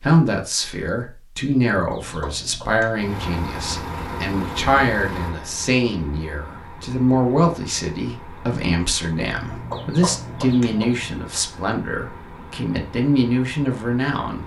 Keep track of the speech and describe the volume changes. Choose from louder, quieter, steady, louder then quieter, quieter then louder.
steady.